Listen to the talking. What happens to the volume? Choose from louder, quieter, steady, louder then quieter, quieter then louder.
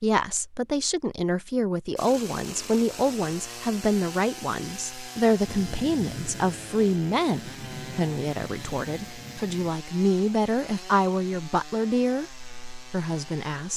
steady.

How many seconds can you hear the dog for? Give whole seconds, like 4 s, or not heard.
not heard.